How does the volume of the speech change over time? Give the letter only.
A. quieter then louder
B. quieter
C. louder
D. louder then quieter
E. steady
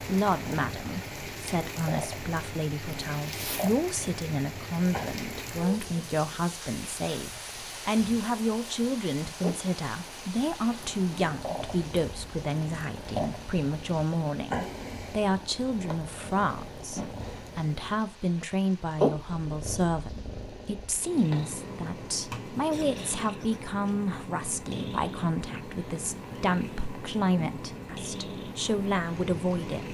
E.